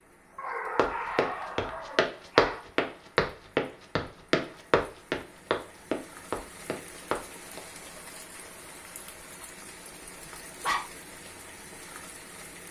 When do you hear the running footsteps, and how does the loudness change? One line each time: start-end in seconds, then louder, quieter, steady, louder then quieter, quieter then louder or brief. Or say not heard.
0.8-7.6 louder then quieter.